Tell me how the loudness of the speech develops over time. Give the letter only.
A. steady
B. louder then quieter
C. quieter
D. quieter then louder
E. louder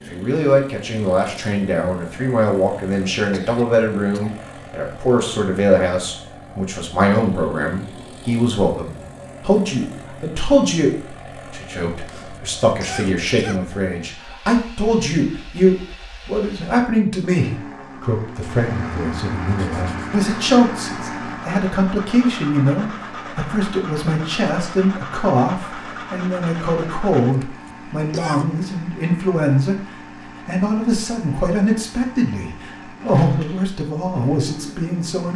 A.